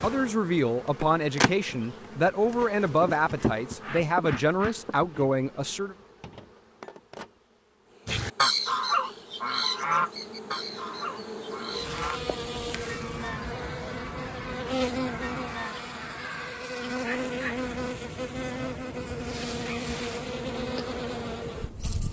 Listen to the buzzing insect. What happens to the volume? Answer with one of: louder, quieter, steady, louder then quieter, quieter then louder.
quieter then louder.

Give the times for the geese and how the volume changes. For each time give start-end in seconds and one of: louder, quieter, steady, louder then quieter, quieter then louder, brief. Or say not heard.
8.1-16.5 quieter.